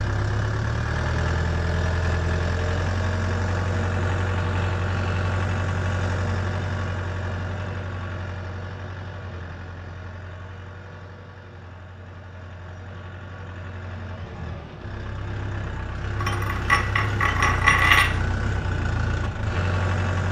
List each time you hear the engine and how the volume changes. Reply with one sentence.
The engine can be heard from 0.0 to 20.2 s, getting quieter then louder.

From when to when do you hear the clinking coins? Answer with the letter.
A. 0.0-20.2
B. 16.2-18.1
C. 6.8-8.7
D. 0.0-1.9
B.